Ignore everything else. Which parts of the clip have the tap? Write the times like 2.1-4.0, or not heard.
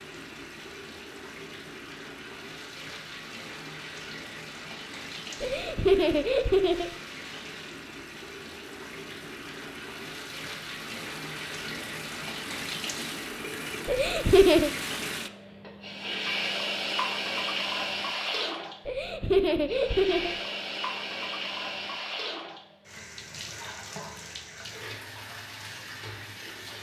0.0-26.7.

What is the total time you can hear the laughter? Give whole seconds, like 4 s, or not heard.
4 s.